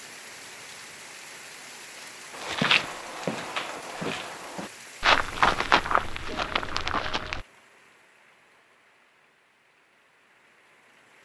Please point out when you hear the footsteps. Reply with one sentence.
The footsteps can be heard from 2.4 to 7.5 s.